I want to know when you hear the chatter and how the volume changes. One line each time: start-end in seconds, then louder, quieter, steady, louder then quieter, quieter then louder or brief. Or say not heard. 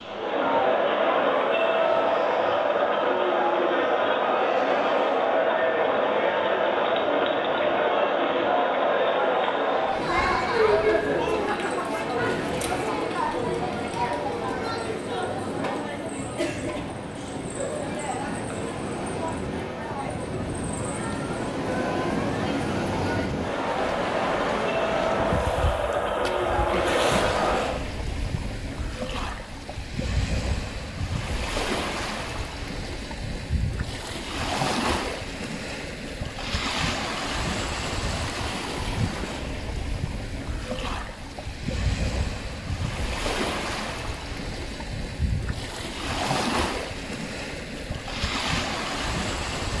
0.0-27.8 quieter then louder.